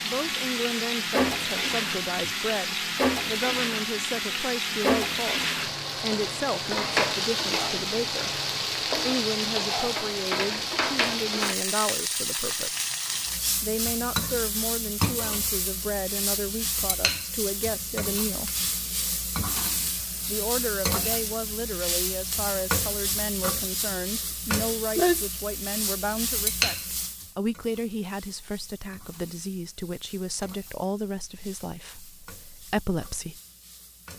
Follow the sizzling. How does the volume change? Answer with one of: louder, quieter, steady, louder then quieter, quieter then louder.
quieter.